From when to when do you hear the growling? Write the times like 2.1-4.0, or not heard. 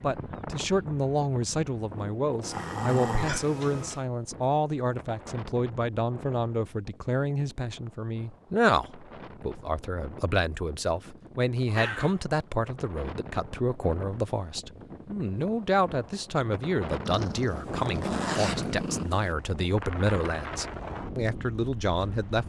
2.4-4.0, 11.7-12.2, 17.1-19.1.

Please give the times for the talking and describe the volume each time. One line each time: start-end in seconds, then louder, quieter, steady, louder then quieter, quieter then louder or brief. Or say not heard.
0.0-22.4 steady.